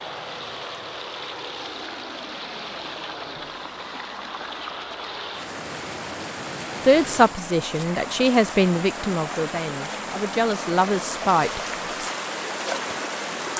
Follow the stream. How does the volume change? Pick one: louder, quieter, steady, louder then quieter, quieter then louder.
louder.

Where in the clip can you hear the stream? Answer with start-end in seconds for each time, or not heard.
0.0-13.5.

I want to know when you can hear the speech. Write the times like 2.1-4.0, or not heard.
6.8-12.1.